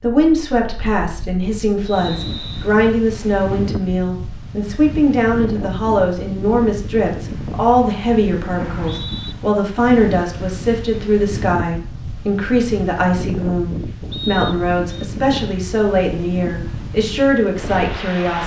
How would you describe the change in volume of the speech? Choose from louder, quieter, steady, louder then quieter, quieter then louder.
steady.